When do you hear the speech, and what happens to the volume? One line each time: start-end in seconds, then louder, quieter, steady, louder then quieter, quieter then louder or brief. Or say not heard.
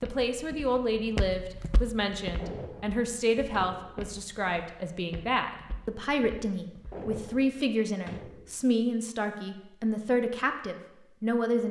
0.0-11.6 steady.